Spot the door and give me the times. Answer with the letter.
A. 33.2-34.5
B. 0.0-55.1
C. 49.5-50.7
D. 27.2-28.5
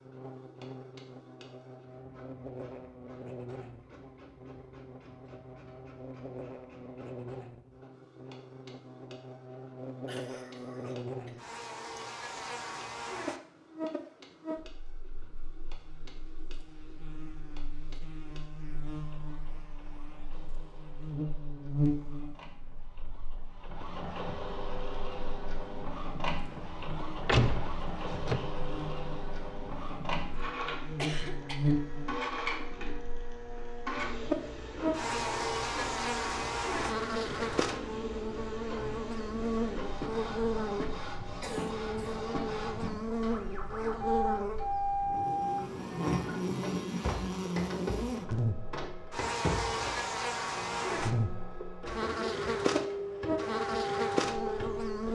D.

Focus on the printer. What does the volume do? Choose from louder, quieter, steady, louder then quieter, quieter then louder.
louder.